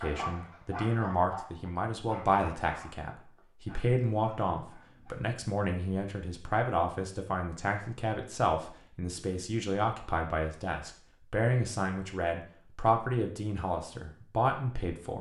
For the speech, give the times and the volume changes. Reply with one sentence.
The speech can be heard from 0.0 to 15.1 s, at a steady volume.